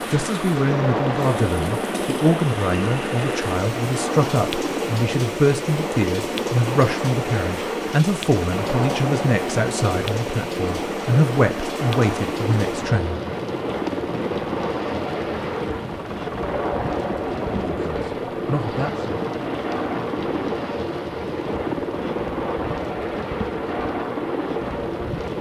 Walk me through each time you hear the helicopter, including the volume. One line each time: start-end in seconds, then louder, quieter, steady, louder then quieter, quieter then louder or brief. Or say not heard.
0.0-25.3 steady.